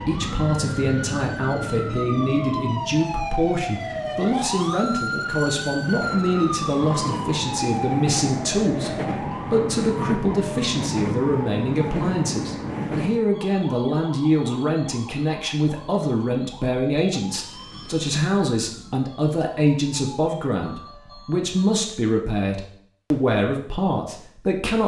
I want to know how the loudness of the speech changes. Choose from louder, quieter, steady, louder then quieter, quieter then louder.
steady.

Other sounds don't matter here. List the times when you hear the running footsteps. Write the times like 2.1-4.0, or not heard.
not heard.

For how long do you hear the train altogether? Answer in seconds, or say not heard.
13 s.